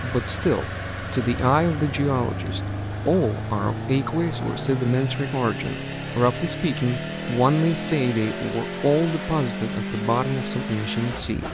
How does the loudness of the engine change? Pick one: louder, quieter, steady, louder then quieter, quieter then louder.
steady.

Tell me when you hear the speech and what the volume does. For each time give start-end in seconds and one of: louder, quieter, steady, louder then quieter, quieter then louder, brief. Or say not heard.
0.0-11.4 steady.